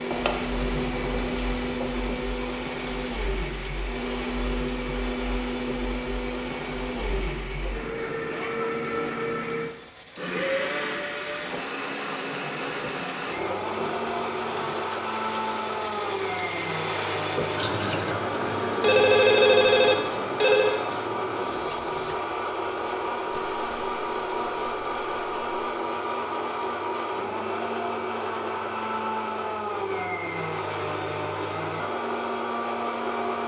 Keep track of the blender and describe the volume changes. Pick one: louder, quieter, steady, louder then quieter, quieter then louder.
steady.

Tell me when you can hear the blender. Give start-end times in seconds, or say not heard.
0.0-33.4.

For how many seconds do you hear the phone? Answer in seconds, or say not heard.
4 s.